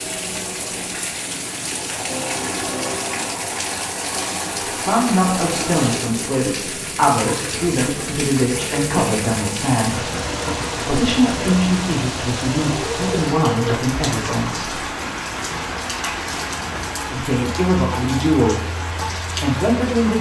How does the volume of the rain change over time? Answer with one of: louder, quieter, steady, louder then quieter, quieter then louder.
steady.